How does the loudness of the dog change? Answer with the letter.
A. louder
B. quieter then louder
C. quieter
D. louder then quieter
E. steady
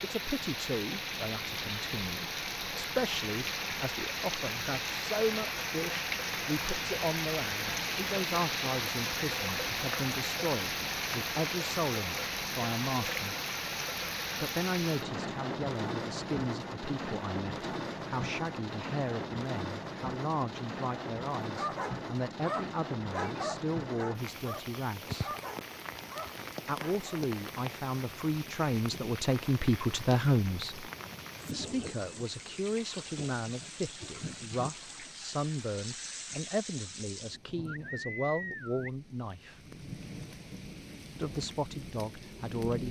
C.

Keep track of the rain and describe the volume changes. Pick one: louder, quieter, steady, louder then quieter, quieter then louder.
quieter.